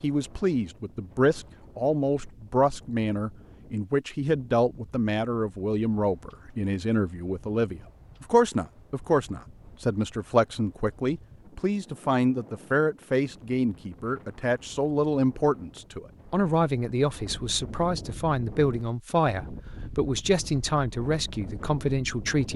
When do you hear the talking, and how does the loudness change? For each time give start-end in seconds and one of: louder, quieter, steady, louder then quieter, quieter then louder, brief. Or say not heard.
0.0-22.5 steady.